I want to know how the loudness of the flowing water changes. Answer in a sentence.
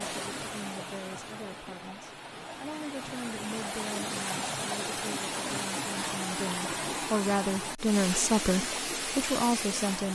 The volume of the flowing water goes up.